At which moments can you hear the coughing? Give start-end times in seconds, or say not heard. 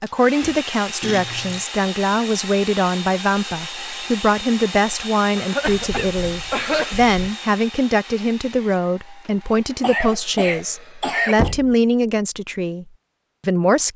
1.0-1.6, 5.3-7.0, 9.8-11.6.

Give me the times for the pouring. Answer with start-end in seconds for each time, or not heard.
not heard.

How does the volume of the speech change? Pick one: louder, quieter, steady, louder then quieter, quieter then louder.
steady.